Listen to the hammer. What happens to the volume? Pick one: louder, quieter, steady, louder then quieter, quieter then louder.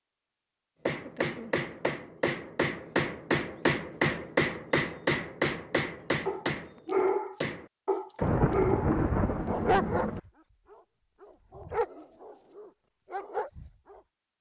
louder then quieter.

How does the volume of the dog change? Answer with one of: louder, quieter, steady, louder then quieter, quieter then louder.
quieter.